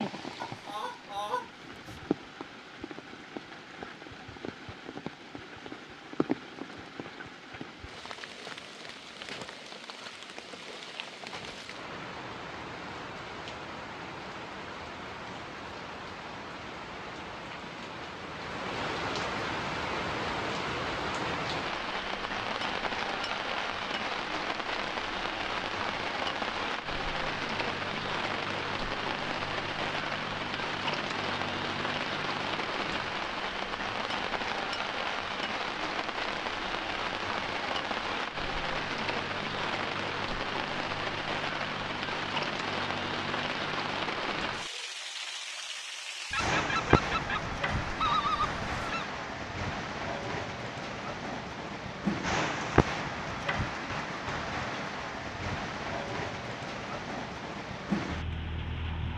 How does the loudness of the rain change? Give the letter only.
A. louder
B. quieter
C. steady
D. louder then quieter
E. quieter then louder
A.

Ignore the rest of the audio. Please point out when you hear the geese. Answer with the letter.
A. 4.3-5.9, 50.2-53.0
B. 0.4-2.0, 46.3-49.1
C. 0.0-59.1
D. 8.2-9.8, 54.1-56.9
B.